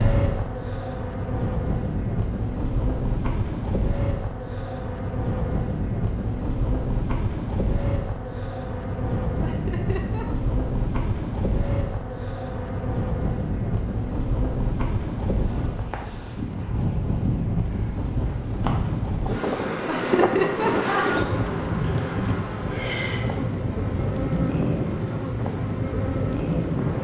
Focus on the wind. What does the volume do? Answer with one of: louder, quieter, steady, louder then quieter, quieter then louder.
steady.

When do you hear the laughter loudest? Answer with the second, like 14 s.
21 s.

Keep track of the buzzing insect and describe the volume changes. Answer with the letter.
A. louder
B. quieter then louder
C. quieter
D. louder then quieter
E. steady
E.